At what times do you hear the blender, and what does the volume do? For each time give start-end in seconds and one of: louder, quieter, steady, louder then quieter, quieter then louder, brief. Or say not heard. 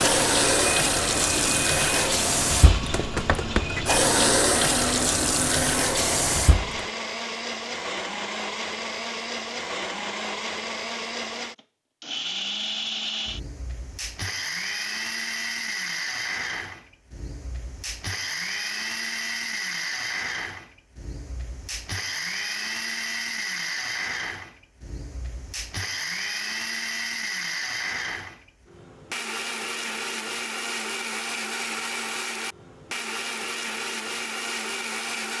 0.1-35.3 steady.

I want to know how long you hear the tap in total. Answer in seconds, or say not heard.
7 s.